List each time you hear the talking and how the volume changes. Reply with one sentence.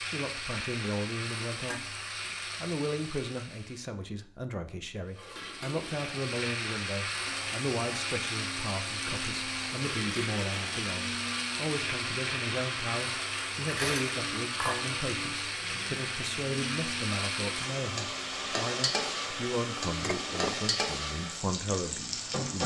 You can hear the talking briefly from 0.1 to 1.9 s; and from 2.6 to 22.6 s, at a steady volume.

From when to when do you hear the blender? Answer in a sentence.
You can hear the blender from 7.2 to 20.1 s.